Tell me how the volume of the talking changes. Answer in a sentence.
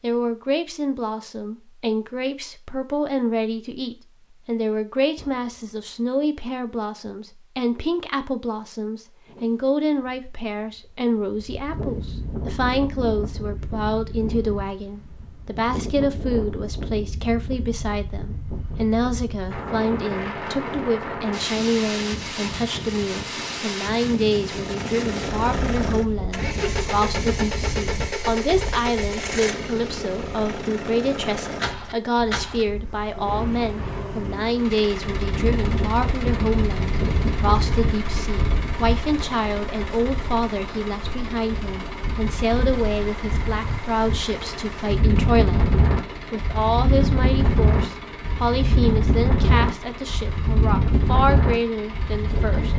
The loudness of the talking stays about the same.